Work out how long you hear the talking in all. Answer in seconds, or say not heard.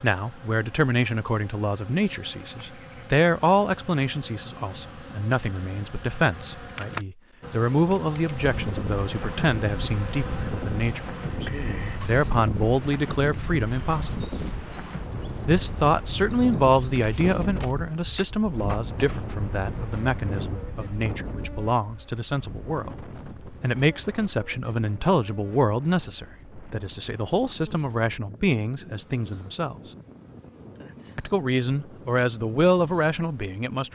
31 s.